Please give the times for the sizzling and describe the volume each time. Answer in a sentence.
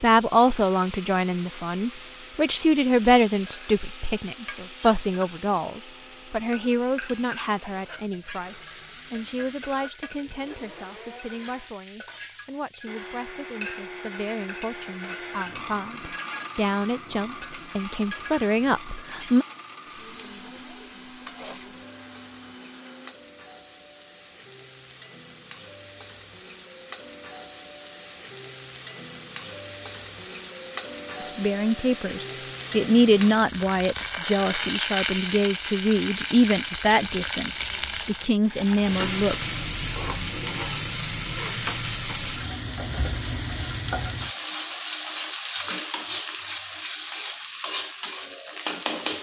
You can hear the sizzling from 0.1 to 49.1 s, getting louder.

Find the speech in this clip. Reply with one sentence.
The speech can be heard from 0.0 to 19.4 s and from 31.2 to 39.5 s.